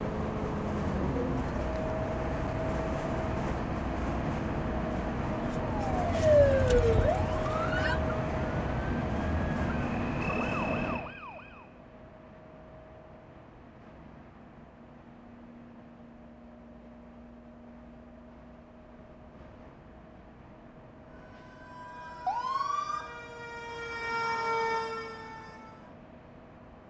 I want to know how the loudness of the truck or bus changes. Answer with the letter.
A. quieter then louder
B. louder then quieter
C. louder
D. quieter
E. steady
D.